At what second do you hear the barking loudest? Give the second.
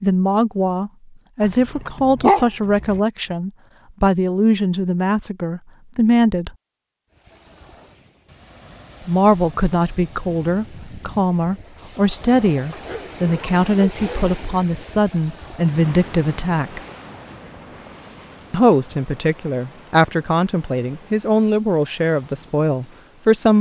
2 s.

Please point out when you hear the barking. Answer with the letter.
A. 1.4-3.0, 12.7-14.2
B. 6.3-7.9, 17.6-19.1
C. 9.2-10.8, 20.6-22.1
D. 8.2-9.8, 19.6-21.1
A.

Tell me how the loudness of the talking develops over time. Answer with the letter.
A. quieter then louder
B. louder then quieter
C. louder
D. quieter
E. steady
E.